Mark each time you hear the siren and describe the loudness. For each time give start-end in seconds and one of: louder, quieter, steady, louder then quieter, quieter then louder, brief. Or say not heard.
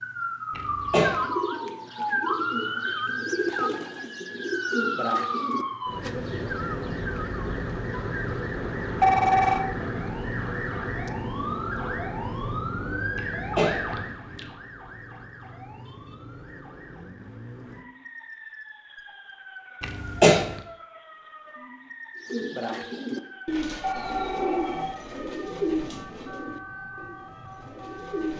0.0-28.3 quieter.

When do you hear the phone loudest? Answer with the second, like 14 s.
9 s.